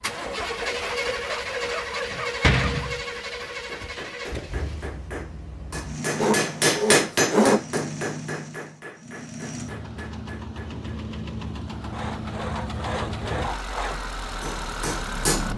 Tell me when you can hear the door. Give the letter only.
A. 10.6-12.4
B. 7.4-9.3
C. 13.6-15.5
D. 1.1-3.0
D.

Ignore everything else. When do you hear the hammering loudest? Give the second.
7 s.